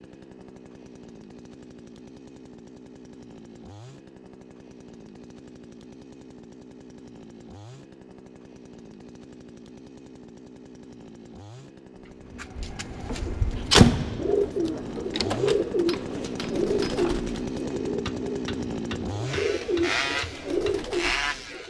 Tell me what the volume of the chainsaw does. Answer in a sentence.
The volume of the chainsaw goes up.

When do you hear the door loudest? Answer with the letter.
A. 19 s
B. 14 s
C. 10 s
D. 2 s
B.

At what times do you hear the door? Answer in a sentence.
You can hear the door from 13.1 to 15.6 s.